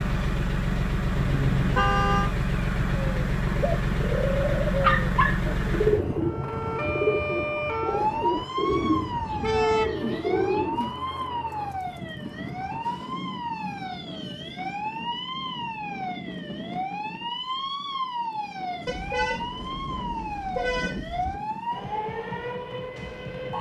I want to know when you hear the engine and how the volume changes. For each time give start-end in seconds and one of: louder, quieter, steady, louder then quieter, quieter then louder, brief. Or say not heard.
0.0-12.9 quieter.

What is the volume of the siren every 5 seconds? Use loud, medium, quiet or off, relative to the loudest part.
off, loud, loud, loud, loud.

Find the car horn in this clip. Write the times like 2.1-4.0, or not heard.
1.1-2.3, 8.7-9.9, 18.9-21.4.